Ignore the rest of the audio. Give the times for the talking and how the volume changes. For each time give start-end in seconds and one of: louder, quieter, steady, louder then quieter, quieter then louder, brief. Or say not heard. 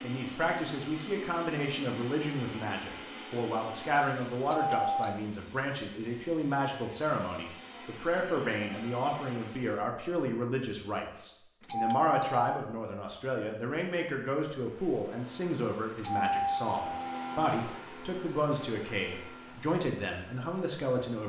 0.0-21.2 steady.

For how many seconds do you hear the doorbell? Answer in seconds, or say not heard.
3 s.